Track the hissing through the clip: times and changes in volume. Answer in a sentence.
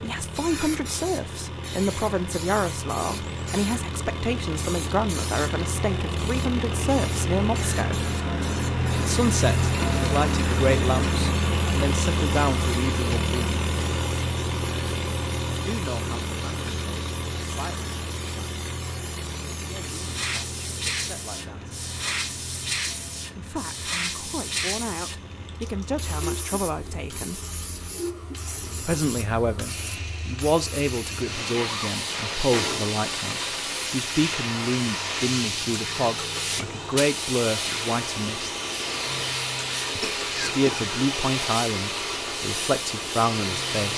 The hissing can be heard from 0.0 to 43.9 s, getting louder.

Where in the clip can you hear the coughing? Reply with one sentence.
The coughing can be heard from 40.0 to 40.9 s.